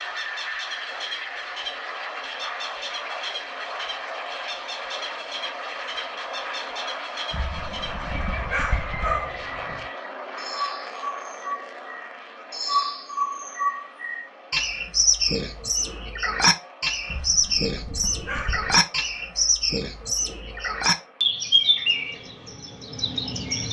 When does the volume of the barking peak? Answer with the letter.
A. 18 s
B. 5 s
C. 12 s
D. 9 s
D.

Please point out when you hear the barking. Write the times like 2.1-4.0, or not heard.
7.3-9.8, 17.1-18.8.